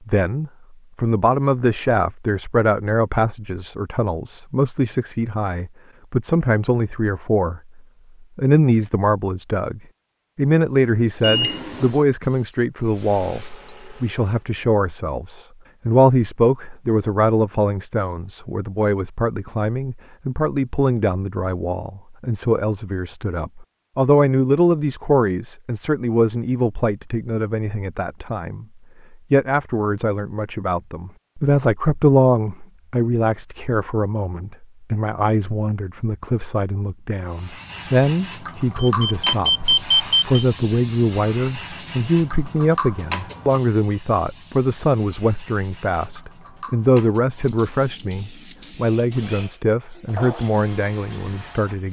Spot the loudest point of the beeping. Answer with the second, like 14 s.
40 s.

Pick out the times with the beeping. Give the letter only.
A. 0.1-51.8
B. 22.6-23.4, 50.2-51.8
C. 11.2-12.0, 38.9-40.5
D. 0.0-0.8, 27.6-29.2
C.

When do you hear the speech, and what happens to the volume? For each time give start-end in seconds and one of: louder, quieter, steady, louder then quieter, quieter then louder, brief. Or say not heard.
0.1-51.8 steady.